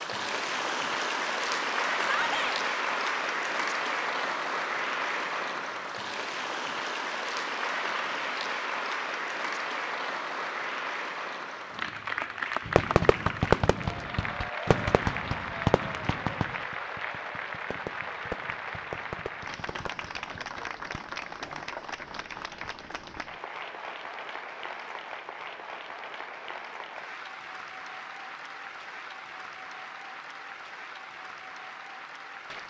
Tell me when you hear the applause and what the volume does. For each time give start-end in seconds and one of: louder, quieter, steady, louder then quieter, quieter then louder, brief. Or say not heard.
0.0-32.6 quieter.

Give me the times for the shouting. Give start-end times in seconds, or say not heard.
2.0-2.6.